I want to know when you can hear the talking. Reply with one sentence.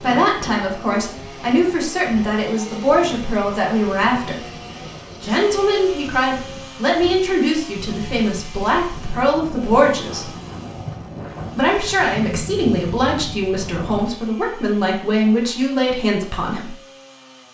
The talking can be heard from 0.0 to 4.5 s, from 5.2 to 10.3 s and from 11.6 to 16.8 s.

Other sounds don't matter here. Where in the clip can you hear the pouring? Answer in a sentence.
You can't hear the pouring here.